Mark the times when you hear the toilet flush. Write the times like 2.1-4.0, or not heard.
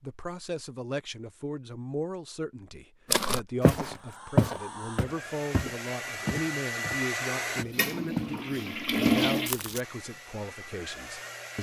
7.5-9.5.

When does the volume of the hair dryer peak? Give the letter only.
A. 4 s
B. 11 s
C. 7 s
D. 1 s
C.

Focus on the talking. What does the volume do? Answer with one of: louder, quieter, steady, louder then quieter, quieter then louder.
steady.